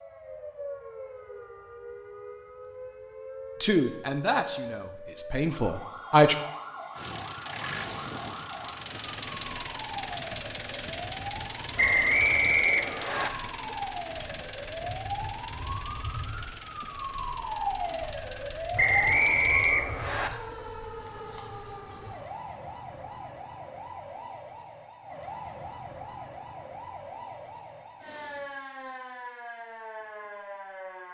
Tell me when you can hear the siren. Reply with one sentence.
The siren can be heard from 0.0 to 31.0 s.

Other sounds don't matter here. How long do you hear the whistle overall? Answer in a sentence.
You can hear the whistle for 3 seconds altogether.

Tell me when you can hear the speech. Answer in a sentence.
The speech can be heard from 3.6 to 6.3 s.